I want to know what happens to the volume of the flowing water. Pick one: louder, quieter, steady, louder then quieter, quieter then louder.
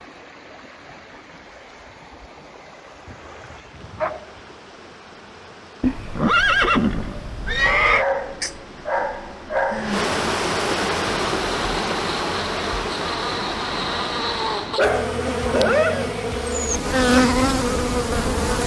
louder.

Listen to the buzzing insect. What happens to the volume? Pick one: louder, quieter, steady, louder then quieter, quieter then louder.
louder.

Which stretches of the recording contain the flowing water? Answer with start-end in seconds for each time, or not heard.
0.0-14.9.